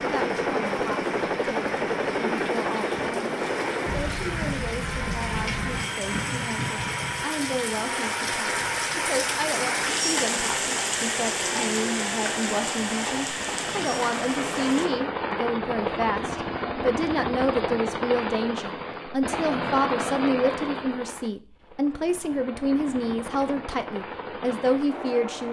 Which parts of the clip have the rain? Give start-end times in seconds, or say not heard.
0.0-14.9.